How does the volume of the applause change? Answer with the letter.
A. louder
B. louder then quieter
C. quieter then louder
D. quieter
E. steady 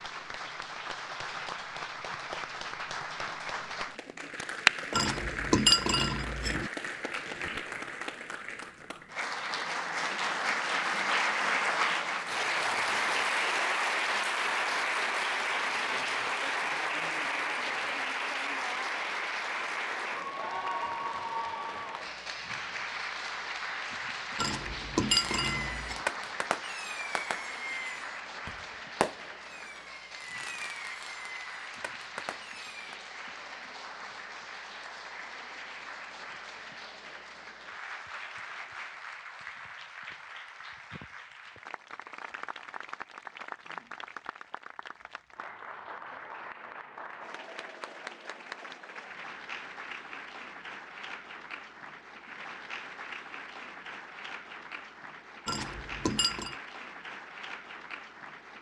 D.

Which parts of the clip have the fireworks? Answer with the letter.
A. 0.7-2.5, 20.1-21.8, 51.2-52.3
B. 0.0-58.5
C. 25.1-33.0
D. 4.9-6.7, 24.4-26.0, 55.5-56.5
C.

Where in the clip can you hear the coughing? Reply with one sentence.
You can't hear the coughing here.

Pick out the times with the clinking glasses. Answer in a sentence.
The clinking glasses can be heard from 4.9 to 6.7 s, from 24.4 to 26.0 s and from 55.5 to 56.5 s.